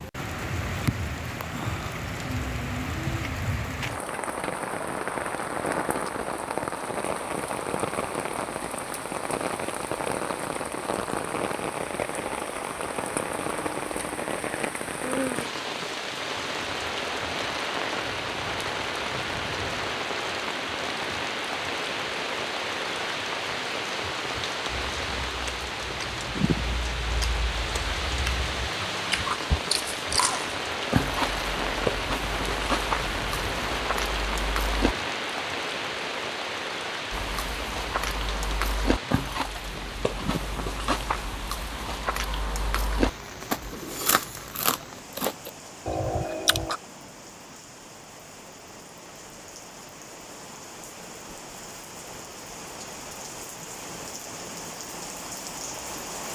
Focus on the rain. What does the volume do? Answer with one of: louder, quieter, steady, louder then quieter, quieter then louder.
quieter.